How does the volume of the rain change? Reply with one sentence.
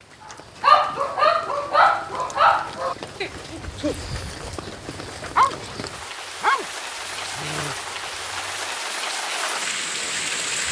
The loudness of the rain goes up.